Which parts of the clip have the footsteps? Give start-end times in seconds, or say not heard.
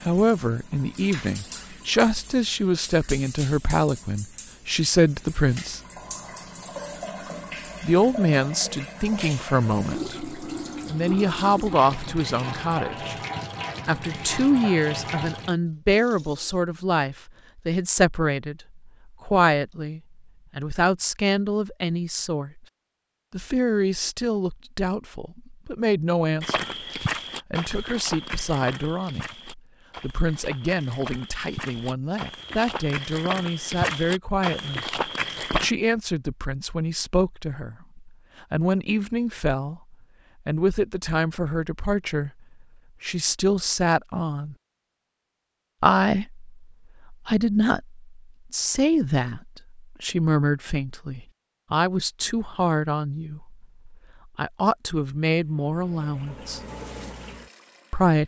26.4-35.7.